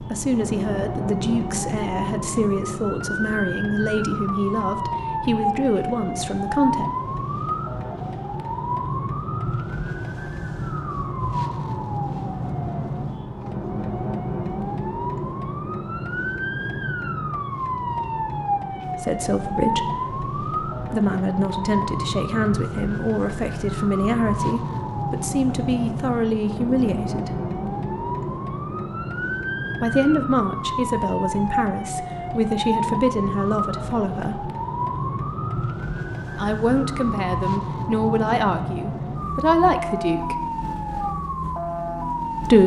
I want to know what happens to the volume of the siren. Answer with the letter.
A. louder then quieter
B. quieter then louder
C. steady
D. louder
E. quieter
C.